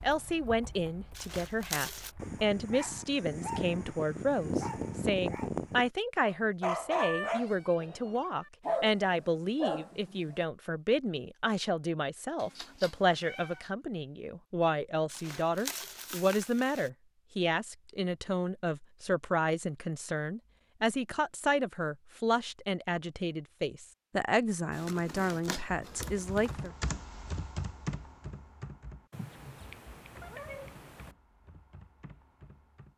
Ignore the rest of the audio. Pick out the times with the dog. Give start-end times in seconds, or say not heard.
2.1-10.4.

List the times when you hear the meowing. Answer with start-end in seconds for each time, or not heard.
7.0-8.5, 12.4-13.7, 29.1-31.1.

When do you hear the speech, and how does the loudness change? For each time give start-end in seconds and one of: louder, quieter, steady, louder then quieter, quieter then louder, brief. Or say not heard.
0.0-26.7 steady.